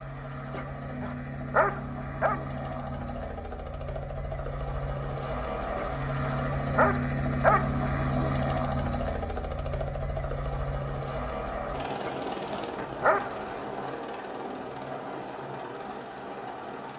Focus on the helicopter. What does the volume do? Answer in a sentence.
The loudness of the helicopter goes up, then down.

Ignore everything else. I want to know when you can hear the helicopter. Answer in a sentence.
You can hear the helicopter from 0.0 to 16.9 s.